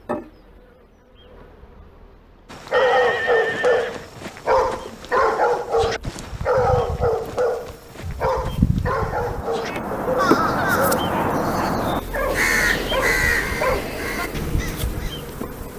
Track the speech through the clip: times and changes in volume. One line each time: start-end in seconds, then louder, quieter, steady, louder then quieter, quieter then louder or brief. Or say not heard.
not heard.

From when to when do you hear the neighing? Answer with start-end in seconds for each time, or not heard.
2.7-4.1.